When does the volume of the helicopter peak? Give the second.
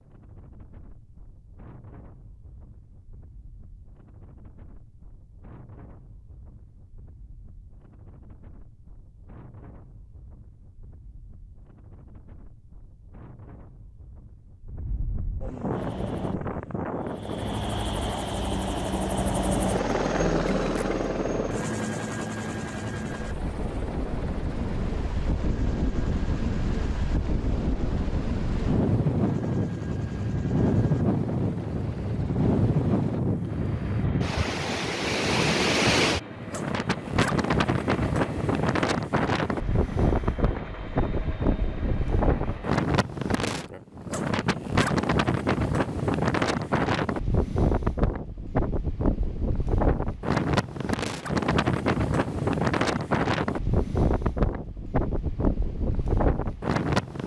20 s.